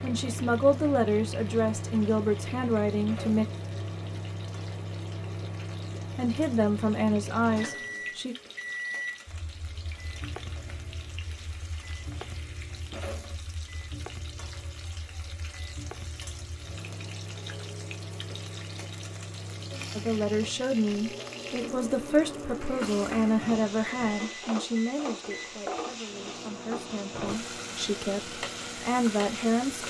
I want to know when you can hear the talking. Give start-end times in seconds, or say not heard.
0.0-3.5, 6.2-8.3, 19.9-29.8.